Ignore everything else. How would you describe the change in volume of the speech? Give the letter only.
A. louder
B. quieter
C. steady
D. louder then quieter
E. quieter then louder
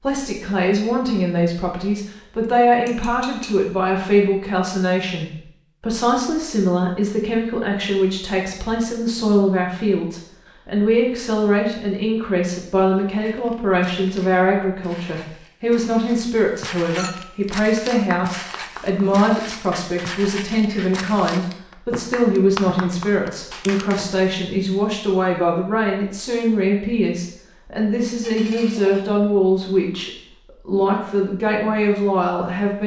C.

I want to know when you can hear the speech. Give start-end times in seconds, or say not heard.
0.0-32.8.